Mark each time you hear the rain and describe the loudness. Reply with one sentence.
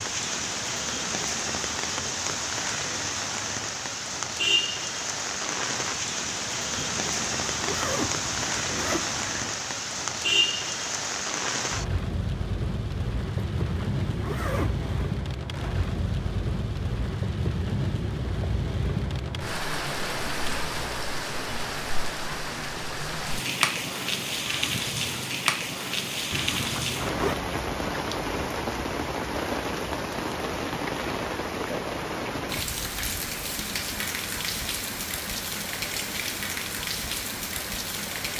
The rain can be heard from 0.0 to 38.3 s, at a steady volume.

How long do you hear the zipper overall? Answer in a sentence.
You can hear the zipper for 5 seconds altogether.